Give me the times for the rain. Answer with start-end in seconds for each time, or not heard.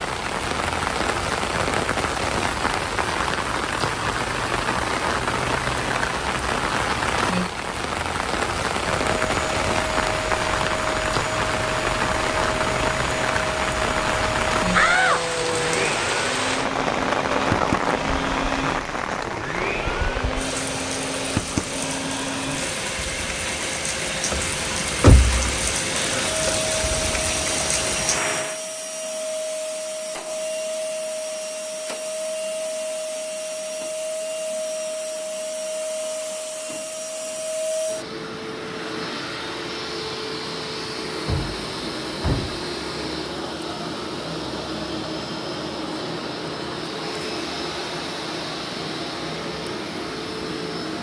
0.0-28.6.